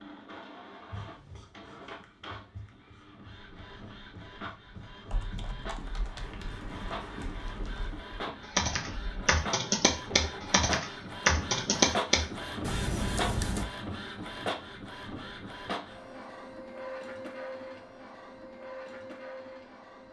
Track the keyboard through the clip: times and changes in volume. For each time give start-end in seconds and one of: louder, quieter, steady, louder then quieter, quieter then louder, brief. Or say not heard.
5.1-13.7 louder.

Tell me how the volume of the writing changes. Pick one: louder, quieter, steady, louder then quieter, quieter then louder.
louder.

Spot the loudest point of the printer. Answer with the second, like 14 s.
12 s.